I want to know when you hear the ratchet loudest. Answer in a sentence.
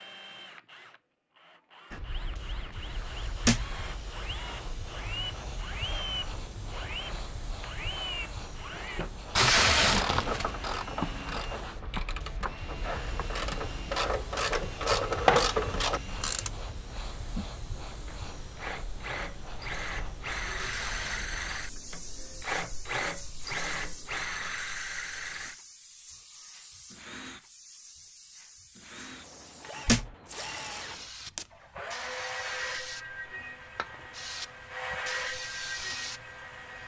The volume of the ratchet peaks at 15 seconds.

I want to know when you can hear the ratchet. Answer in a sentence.
You can hear the ratchet from 9.3 to 16.5 s.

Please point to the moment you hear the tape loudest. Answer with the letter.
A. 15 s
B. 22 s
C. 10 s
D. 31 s
C.